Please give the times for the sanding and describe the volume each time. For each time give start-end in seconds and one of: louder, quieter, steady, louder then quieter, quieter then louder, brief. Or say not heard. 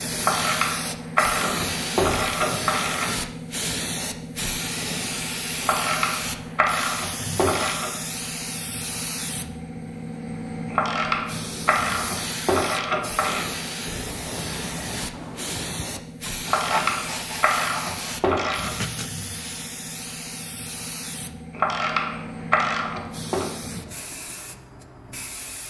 14.1-19.1 louder then quieter.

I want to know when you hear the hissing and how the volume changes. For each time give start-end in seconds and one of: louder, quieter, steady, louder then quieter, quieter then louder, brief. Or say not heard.
0.0-25.6 quieter.